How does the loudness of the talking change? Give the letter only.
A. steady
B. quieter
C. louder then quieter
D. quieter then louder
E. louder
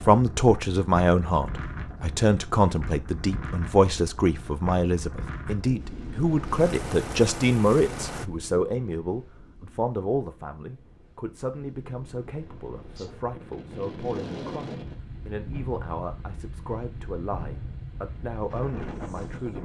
B.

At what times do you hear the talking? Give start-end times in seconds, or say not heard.
0.0-19.6.